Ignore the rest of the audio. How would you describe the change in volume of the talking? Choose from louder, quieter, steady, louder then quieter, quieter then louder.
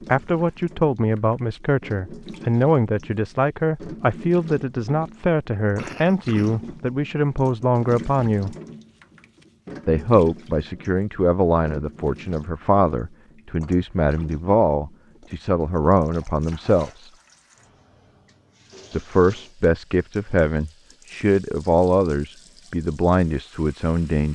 steady.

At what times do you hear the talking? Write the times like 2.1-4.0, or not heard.
0.1-8.6, 9.8-17.1, 18.9-24.3.